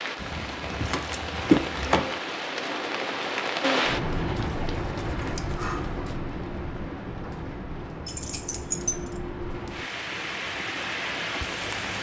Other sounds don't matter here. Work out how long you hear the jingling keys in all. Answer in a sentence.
You can hear the jingling keys for 5 seconds altogether.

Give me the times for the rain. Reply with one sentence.
You can hear the rain from 0.0 to 11.9 s.